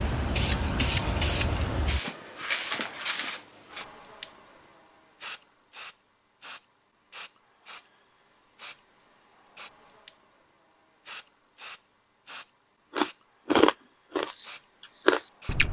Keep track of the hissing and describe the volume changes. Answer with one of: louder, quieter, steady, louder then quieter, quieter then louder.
quieter.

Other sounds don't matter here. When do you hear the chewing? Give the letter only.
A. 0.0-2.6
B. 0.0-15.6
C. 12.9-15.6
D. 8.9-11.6
C.